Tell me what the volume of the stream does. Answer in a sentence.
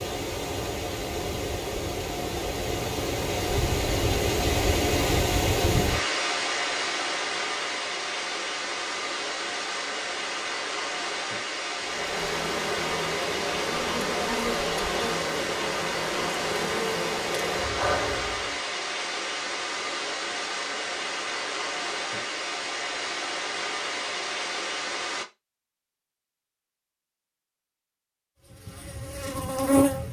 The volume of the stream stays about the same.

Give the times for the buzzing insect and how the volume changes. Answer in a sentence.
The buzzing insect can be heard from 11.8 to 18.6 s, at a steady volume; and briefly from 28.5 to 30.0 s.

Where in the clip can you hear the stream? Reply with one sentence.
The stream can be heard from 0.0 to 25.2 s.